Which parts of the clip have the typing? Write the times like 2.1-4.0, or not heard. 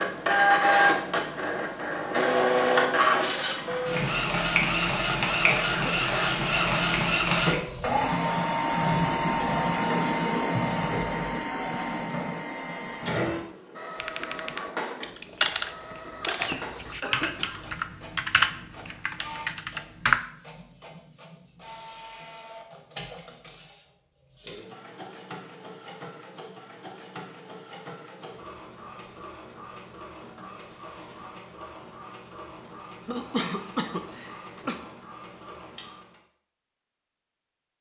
13.9-20.2.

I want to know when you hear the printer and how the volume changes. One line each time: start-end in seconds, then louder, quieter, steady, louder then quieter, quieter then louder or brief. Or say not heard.
0.0-36.2 quieter.